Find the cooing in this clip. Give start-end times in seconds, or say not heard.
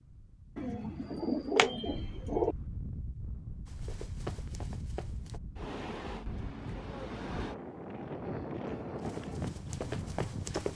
0.6-2.5.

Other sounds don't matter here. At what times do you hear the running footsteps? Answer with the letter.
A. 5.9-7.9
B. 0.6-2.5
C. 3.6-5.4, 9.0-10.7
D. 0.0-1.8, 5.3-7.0
C.